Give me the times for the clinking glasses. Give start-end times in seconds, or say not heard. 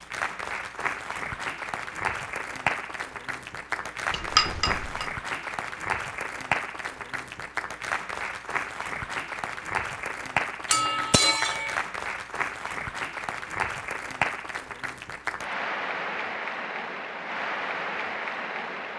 4.1-5.1, 10.7-11.8.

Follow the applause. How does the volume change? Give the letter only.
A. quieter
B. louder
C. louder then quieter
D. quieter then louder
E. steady
E.